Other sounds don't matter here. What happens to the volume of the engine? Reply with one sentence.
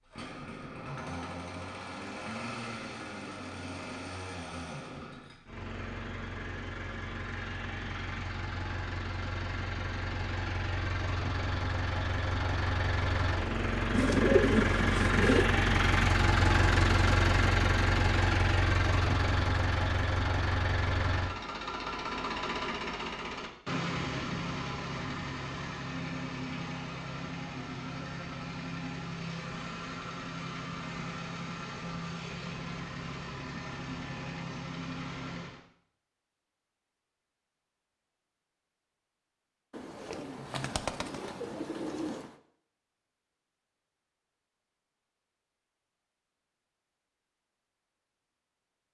The loudness of the engine goes up, then down.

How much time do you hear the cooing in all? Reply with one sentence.
You can hear the cooing for 4 seconds altogether.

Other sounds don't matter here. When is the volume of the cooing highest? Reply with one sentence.
The loudest moment of the cooing is at 14 seconds.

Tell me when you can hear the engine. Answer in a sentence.
You can hear the engine from 0.0 to 35.6 s.